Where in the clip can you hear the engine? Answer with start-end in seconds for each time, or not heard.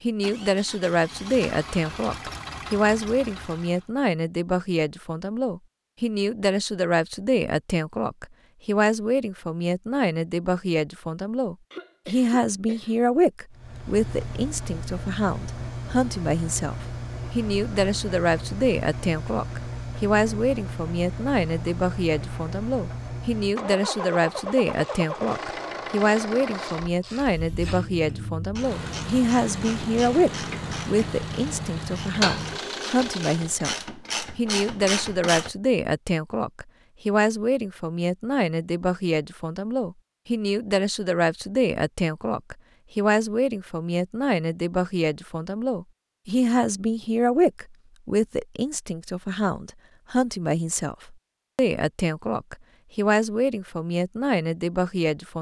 0.0-3.9, 13.5-33.6.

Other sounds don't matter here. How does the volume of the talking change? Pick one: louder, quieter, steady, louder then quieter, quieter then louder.
steady.